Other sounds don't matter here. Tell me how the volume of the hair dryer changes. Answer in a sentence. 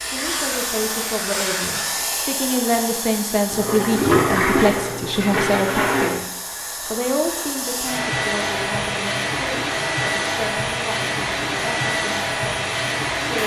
The volume of the hair dryer goes down, then up.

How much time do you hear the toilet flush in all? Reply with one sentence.
The toilet flush can be heard for 3 seconds in total.